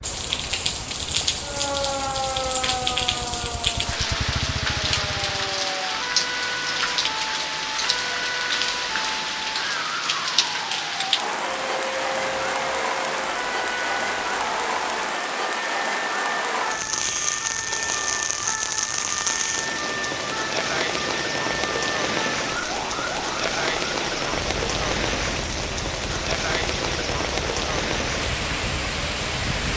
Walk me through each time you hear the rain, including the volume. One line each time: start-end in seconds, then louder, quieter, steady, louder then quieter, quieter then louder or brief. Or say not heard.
0.0-29.7 steady.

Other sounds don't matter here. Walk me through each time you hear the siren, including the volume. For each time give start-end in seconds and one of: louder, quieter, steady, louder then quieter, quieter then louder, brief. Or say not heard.
1.4-29.6 quieter.